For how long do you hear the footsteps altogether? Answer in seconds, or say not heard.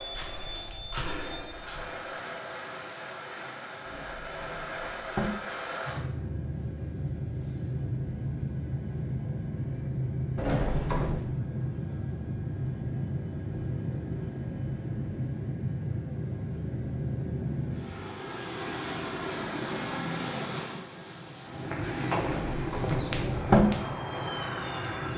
6 s.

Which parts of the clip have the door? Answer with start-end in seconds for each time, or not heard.
3.9-5.3, 10.3-11.2, 22.2-23.6.